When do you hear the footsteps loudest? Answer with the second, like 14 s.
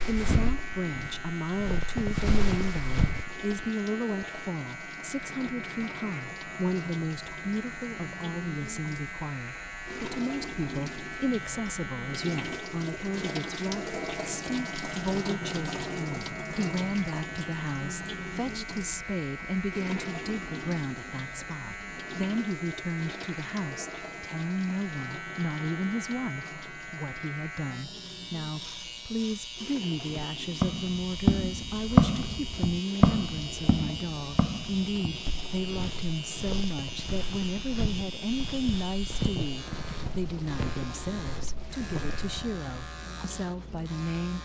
32 s.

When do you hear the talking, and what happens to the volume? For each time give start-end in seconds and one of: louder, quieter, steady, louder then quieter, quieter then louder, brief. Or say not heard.
0.0-44.4 steady.